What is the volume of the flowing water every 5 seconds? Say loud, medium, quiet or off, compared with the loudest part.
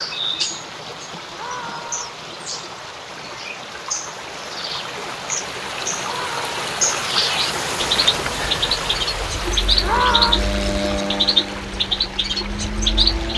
medium, loud, medium.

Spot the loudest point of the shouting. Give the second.
10 s.